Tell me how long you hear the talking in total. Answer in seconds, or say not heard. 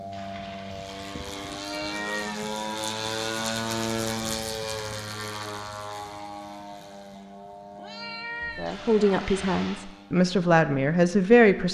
3 s.